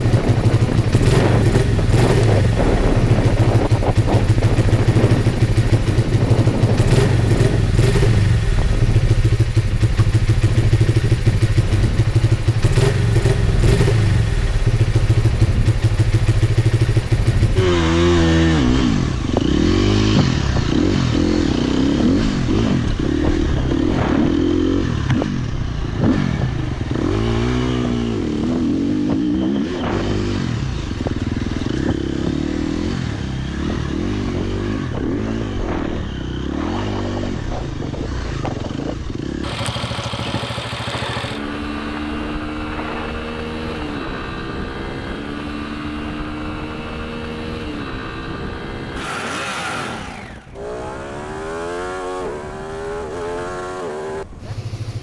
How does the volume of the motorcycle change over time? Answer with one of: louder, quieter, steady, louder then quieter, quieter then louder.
quieter.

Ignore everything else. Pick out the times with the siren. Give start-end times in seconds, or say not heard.
not heard.